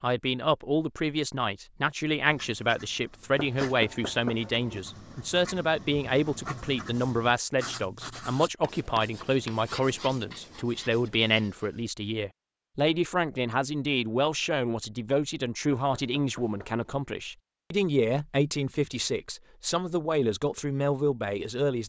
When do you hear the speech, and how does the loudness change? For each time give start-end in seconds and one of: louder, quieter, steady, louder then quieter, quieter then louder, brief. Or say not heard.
0.0-21.8 steady.